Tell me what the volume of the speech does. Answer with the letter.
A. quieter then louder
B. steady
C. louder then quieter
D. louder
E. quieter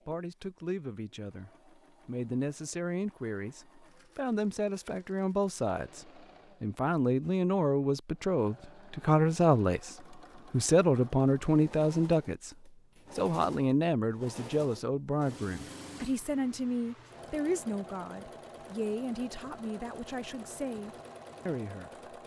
C.